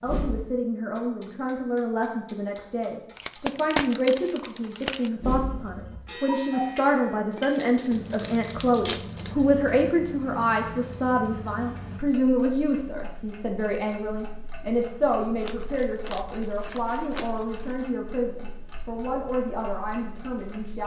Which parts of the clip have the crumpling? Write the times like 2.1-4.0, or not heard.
3.1-5.1, 7.3-9.3, 15.4-17.9.